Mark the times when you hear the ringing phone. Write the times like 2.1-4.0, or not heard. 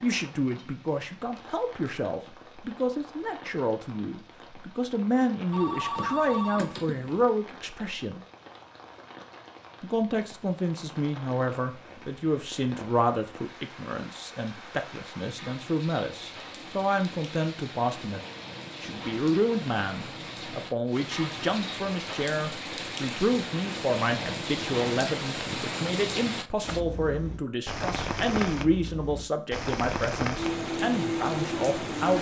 5.5-7.2.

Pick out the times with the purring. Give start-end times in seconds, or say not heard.
not heard.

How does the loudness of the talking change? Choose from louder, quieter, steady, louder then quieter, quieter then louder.
steady.